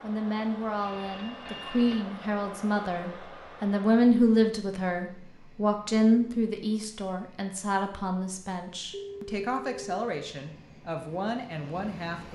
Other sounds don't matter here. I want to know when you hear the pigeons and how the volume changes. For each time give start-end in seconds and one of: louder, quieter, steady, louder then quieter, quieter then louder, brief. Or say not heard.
not heard.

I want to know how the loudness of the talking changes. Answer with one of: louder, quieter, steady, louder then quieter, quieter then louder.
louder then quieter.